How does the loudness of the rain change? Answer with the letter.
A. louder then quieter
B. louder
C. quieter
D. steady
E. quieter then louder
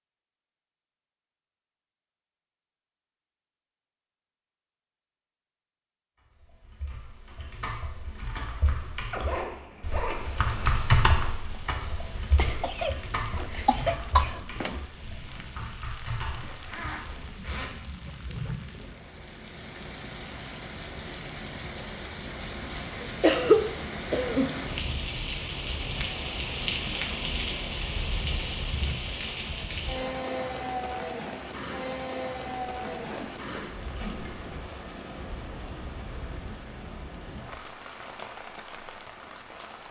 A.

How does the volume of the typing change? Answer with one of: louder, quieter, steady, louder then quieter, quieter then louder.
louder then quieter.